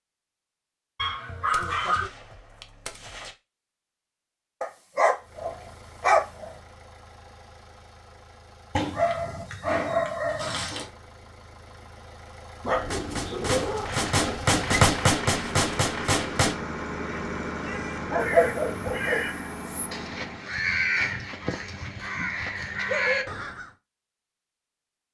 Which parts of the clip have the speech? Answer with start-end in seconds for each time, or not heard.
not heard.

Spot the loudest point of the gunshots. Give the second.
15 s.